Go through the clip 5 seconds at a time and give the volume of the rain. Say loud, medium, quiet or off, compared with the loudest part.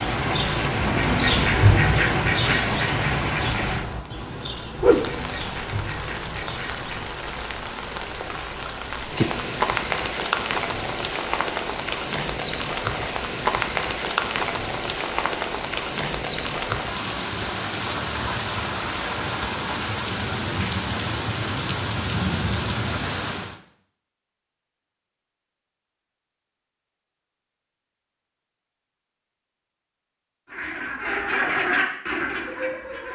loud, loud, loud, loud, loud, off, off.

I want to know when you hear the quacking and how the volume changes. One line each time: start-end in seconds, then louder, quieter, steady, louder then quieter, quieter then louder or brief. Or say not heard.
0.0-7.2 quieter
30.4-33.1 brief.